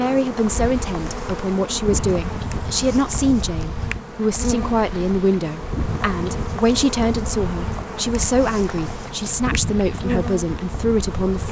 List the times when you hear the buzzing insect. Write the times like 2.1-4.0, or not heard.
0.0-11.4.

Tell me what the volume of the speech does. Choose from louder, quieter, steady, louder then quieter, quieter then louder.
steady.